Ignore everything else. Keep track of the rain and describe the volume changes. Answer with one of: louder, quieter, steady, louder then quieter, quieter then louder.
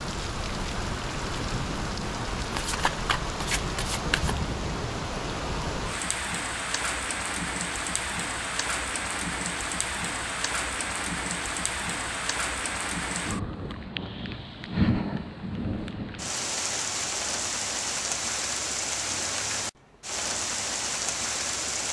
steady.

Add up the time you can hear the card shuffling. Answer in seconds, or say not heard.
2 s.